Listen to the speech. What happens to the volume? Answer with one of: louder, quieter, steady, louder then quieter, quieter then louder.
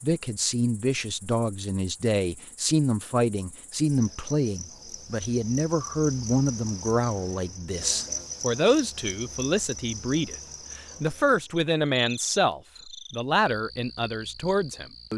steady.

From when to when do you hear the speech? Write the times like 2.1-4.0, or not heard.
0.0-15.1.